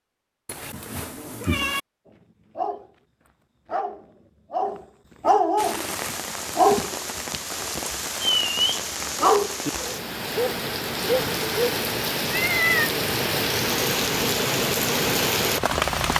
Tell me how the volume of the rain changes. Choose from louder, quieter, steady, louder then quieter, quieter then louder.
louder.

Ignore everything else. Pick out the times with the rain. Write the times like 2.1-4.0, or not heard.
5.5-16.1.